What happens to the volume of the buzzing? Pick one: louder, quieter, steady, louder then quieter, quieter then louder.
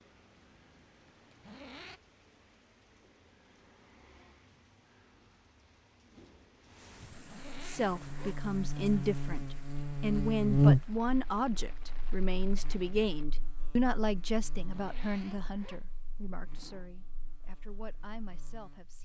louder then quieter.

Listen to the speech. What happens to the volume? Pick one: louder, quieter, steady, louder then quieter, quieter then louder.
quieter.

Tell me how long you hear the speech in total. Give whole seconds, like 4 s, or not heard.
11 s.